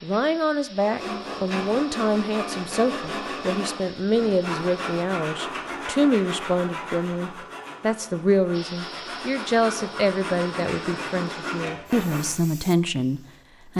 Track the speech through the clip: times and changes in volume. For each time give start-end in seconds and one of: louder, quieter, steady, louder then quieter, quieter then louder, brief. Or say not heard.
0.0-13.7 steady.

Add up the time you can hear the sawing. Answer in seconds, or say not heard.
12 s.